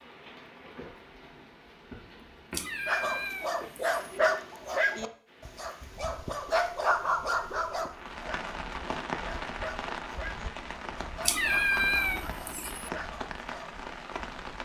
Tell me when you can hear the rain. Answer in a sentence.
You can hear the rain from 0.0 to 14.6 s.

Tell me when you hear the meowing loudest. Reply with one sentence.
The loudest moment of the meowing is at 12 seconds.